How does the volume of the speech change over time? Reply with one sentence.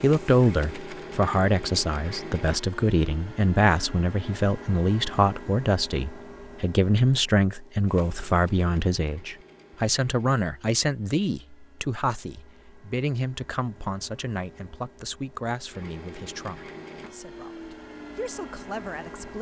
The volume of the speech goes down.